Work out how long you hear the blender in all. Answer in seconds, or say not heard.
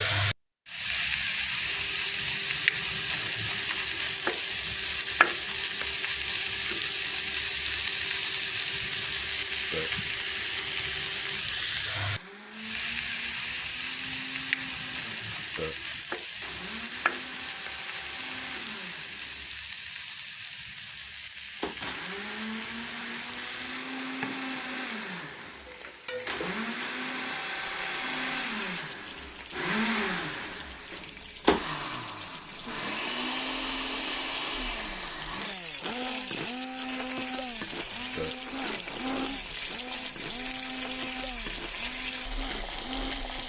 40 s.